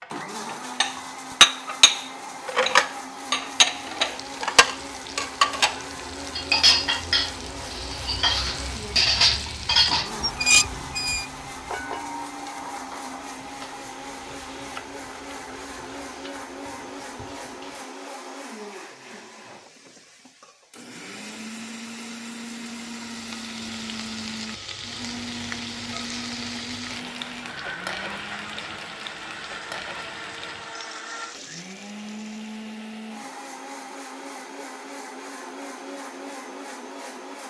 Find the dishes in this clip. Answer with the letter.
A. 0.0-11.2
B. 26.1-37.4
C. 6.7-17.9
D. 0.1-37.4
A.